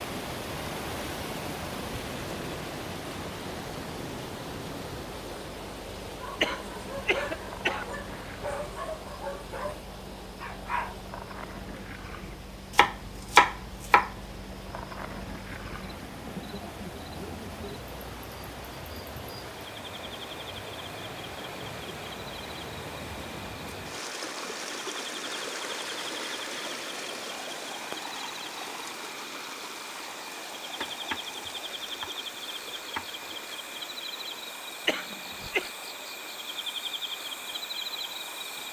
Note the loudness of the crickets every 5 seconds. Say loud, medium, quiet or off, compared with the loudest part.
medium, medium, medium, medium, medium, medium, loud, loud.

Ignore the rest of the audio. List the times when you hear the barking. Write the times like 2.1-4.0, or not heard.
6.2-11.1.